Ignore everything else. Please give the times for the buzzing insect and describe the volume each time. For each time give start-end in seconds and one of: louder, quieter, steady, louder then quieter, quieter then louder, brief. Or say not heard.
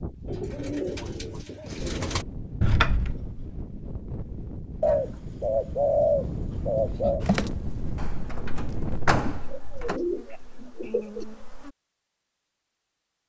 7.2-11.7 louder.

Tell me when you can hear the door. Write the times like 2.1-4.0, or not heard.
2.6-3.5, 8.0-10.0.